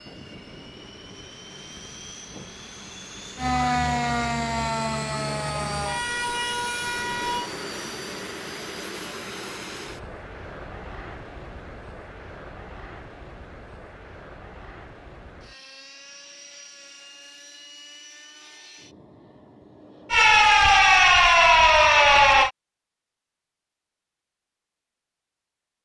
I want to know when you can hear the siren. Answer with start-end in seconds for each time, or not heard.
3.4-7.5, 20.1-22.5.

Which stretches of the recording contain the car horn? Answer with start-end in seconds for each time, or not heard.
not heard.